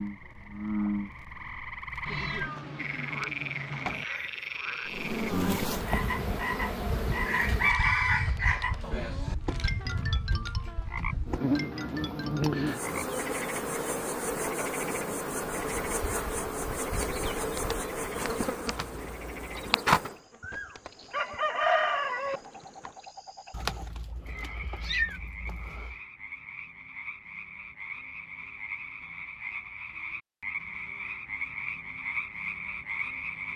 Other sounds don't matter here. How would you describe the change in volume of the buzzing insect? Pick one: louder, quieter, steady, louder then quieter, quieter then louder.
steady.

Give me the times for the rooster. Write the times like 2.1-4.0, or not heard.
6.2-8.7, 20.4-22.4.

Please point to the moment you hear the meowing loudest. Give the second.
25 s.